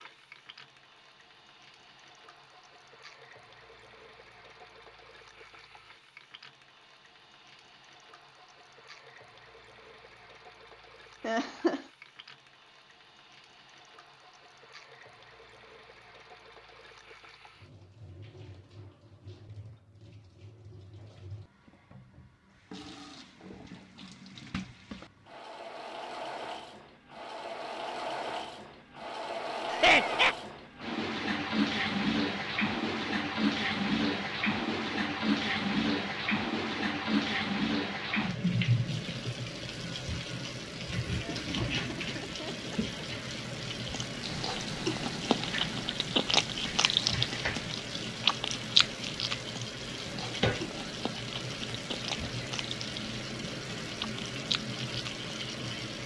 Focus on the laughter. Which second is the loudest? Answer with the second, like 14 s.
30 s.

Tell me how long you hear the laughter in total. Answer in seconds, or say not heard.
3 s.